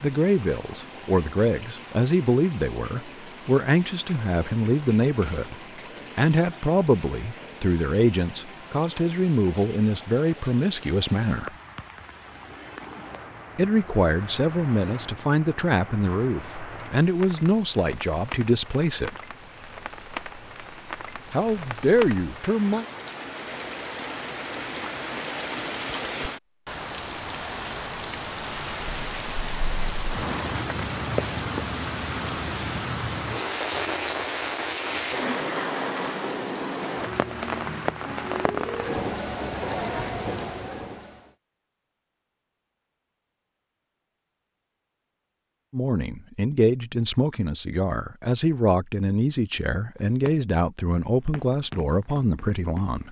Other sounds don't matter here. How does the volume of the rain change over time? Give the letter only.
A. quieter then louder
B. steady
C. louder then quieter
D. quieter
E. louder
E.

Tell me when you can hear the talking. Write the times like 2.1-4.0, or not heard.
0.0-5.5, 6.2-11.5, 13.6-19.2, 21.3-22.9, 45.7-53.0.